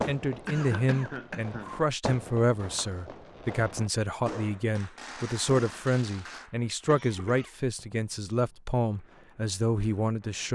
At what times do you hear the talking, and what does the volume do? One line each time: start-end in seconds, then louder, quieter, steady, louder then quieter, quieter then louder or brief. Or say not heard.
0.1-10.5 steady.